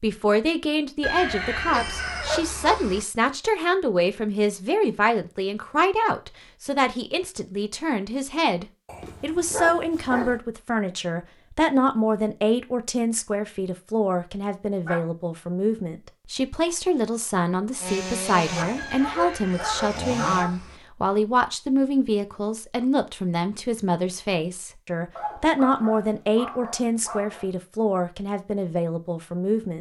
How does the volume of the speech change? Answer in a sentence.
The loudness of the speech stays about the same.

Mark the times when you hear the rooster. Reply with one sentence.
The rooster can be heard from 1.0 to 3.0 s and from 18.8 to 20.8 s.